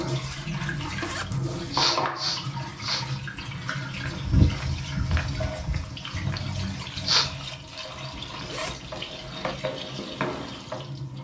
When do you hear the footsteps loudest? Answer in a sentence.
The loudest moment of the footsteps is at 4 seconds.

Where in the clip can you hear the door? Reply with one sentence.
You can't hear the door here.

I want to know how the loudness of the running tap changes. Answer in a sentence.
The volume of the running tap goes down.